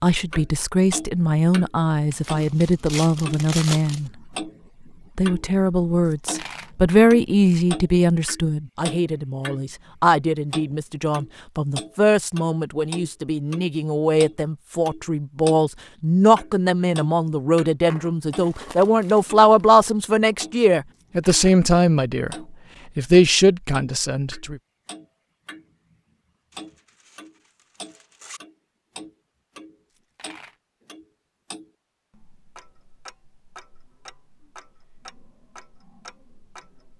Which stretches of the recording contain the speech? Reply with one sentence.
The speech can be heard from 0.0 to 4.1 s and from 5.2 to 24.6 s.